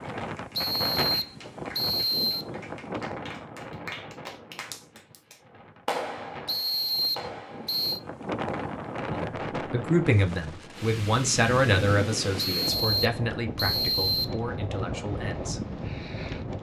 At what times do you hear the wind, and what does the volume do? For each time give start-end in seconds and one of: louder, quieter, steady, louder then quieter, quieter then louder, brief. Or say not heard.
0.0-16.5 quieter then louder.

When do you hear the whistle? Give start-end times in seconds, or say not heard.
0.6-2.5, 6.5-8.0, 12.6-14.4.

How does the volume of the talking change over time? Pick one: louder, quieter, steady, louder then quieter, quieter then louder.
quieter.